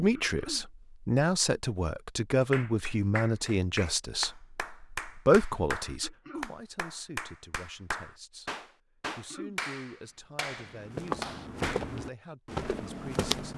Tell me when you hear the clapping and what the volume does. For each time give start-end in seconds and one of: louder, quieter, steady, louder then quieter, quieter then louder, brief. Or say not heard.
2.3-11.9 steady.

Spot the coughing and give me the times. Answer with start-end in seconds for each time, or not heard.
0.1-0.7, 6.0-6.5, 9.1-9.6.